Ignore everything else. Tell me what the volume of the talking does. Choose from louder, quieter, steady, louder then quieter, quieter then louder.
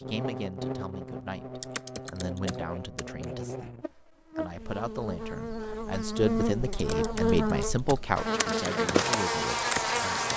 louder then quieter.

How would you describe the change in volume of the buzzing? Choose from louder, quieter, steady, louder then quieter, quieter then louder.
louder.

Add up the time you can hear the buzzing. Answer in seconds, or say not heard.
10 s.